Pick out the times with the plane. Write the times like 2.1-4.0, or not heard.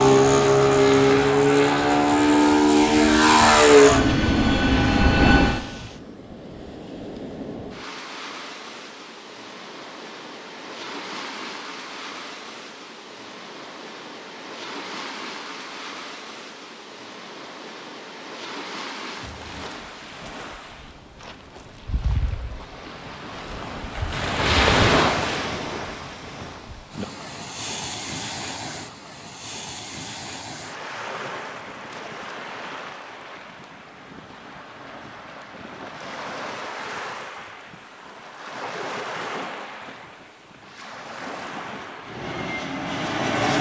0.0-5.6, 42.0-43.5.